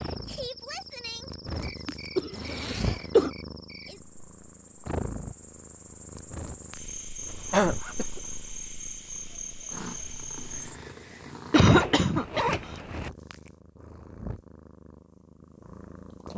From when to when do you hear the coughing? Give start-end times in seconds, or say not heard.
1.9-3.3, 7.5-8.1, 11.5-12.6.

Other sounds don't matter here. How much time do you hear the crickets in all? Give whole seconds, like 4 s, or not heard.
11 s.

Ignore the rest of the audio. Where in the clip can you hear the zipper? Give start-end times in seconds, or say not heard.
2.1-3.1, 7.2-8.7, 11.6-13.1.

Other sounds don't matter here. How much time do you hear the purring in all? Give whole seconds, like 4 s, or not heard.
16 s.